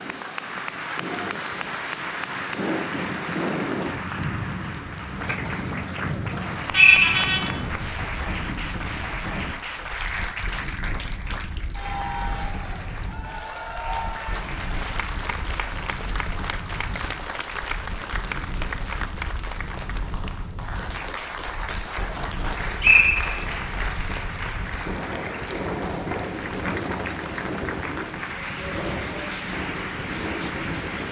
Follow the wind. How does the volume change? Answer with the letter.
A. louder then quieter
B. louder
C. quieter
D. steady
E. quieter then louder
E.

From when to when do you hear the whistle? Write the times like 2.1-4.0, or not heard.
6.8-7.5, 22.4-23.4.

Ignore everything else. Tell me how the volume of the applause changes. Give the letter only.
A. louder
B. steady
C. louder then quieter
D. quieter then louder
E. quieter
B.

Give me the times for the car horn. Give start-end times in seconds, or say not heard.
6.7-7.4.